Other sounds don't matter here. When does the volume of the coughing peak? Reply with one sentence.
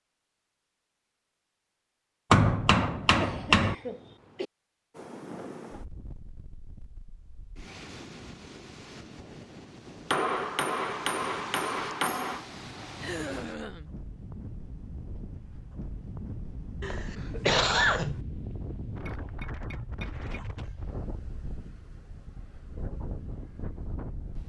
The loudest moment of the coughing is at 18 seconds.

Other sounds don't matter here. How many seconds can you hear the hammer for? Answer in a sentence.
The hammer can be heard for 5 seconds in total.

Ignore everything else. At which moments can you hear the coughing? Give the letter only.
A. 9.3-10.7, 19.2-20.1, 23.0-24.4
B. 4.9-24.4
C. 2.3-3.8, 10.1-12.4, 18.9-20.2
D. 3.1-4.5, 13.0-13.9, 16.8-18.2
D.